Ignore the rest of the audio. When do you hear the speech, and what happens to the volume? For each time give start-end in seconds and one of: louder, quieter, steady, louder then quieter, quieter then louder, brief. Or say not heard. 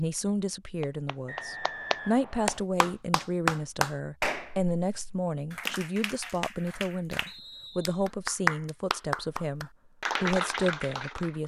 0.0-11.4 steady.